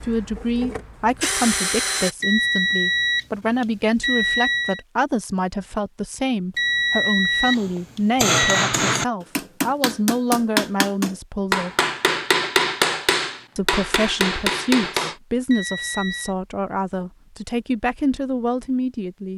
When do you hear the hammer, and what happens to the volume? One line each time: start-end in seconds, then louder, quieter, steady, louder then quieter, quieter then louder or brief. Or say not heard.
7.5-15.2 steady.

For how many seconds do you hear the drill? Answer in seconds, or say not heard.
2 s.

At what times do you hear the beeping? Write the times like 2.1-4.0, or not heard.
2.2-4.8, 6.5-8.7, 15.5-16.4.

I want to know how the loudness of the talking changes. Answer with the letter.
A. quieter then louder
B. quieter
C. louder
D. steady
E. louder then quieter
D.